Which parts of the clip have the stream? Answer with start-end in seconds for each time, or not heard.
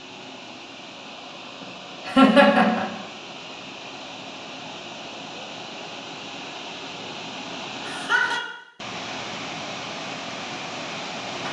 0.0-11.4.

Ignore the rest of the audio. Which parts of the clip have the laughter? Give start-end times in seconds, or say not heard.
2.0-2.9, 7.8-8.4.